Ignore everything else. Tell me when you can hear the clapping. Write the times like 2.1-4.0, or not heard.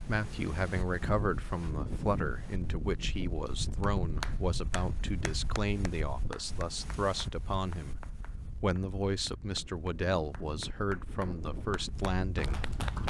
3.8-13.0.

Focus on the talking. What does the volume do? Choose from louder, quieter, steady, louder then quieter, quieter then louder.
steady.